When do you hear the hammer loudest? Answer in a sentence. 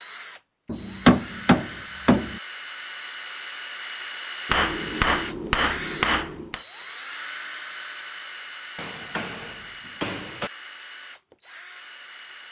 The volume of the hammer peaks at 1 second.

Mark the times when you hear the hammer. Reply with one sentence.
The hammer can be heard from 0.7 to 2.4 s, from 4.5 to 6.6 s and from 8.8 to 10.5 s.